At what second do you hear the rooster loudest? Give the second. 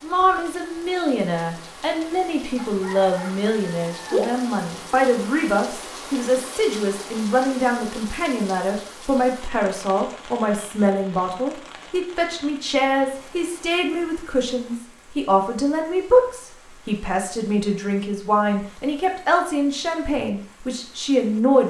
4 s.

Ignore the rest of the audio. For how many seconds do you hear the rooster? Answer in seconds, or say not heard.
2 s.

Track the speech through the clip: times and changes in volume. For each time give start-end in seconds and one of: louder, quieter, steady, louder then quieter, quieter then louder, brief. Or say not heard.
0.0-21.6 steady.